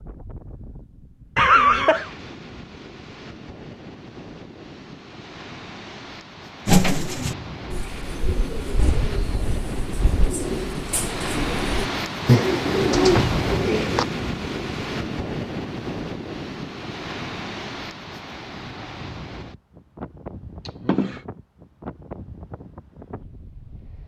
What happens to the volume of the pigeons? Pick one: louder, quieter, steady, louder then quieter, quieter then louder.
louder.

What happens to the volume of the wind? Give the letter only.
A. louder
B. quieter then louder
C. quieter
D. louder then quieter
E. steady
D.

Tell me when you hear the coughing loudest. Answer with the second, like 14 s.
2 s.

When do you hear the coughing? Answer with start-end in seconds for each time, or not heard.
1.4-2.1, 12.9-13.4, 20.6-21.2.